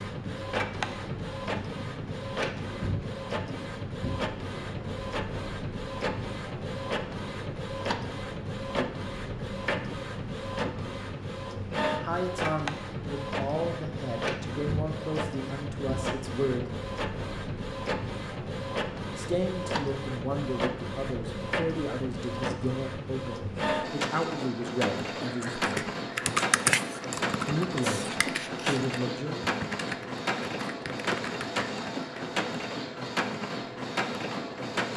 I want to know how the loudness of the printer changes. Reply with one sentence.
The loudness of the printer stays about the same.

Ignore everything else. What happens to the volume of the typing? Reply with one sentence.
The loudness of the typing goes down.